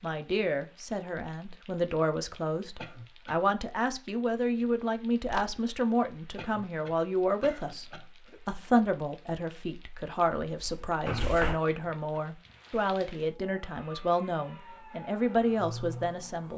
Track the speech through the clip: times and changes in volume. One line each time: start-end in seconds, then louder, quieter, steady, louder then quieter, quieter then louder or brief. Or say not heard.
0.0-16.5 steady.